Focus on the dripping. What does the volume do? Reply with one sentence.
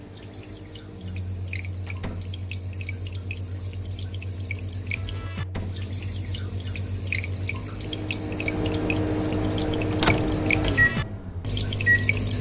The volume of the dripping goes up.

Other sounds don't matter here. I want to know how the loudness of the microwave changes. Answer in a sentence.
The volume of the microwave goes up.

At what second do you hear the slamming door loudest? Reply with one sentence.
The loudest moment of the slamming door is at 10 seconds.